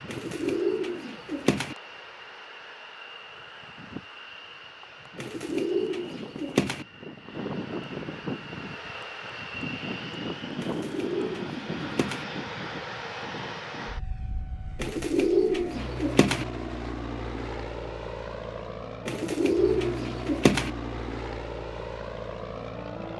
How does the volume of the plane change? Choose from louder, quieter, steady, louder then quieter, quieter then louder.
louder.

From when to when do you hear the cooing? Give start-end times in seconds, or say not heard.
0.1-1.8, 5.2-6.8, 10.6-12.2, 14.8-16.4, 19.1-20.7.